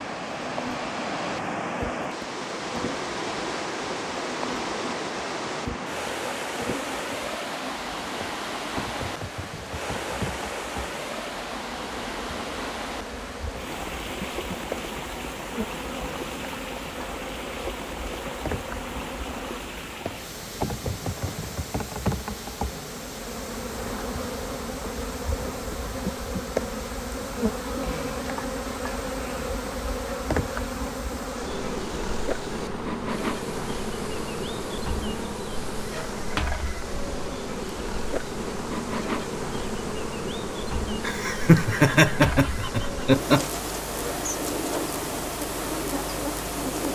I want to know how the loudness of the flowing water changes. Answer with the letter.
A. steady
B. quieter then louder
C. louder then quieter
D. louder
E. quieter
E.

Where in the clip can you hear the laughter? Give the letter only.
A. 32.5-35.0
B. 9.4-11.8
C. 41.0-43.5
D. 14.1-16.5
C.